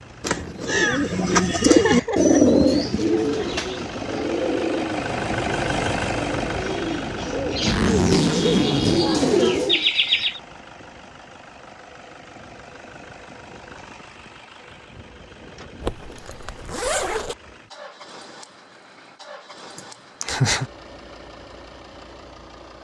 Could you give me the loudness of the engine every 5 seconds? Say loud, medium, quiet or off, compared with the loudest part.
medium, loud, quiet, quiet, quiet.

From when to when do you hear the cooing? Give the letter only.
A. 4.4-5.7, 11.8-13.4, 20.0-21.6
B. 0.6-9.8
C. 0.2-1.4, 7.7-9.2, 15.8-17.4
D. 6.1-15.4
B.